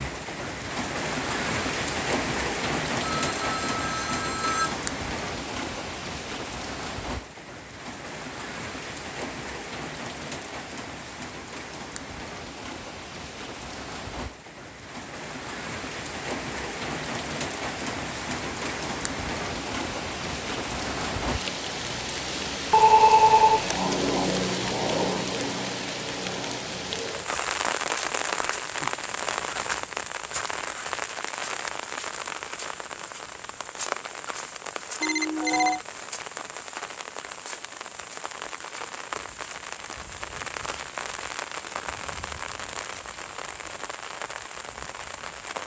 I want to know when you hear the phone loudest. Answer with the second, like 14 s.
23 s.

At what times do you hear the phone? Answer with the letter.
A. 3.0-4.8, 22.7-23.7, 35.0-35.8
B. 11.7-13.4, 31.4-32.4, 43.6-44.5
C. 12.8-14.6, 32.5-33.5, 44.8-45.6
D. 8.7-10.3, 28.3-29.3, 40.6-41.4
A.